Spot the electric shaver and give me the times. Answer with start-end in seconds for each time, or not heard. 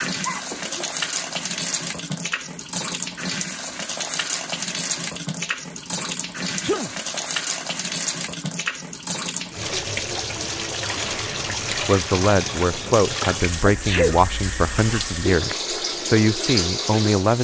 not heard.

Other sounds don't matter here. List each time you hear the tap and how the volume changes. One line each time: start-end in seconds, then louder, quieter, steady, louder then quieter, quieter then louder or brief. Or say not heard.
0.0-17.4 steady.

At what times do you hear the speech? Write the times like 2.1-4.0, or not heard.
11.8-17.4.